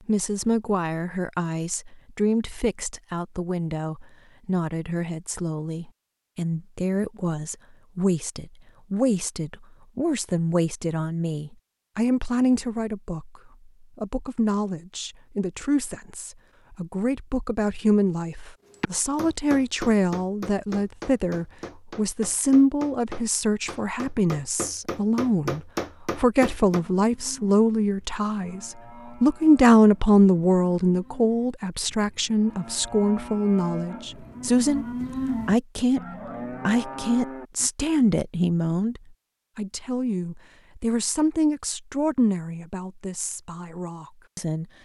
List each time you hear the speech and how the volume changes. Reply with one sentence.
You can hear the speech from 0.1 to 34.9 s, getting louder; briefly from 35.5 to 36.0 s; and from 36.6 to 44.7 s, getting quieter.